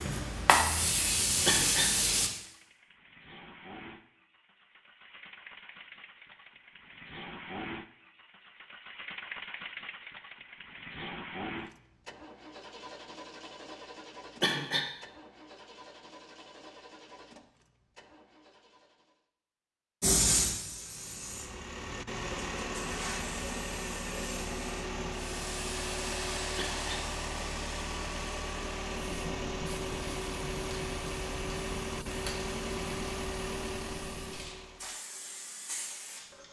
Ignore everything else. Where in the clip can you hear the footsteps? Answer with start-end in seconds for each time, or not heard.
not heard.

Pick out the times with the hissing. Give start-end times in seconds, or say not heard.
0.0-2.3, 20.0-36.4.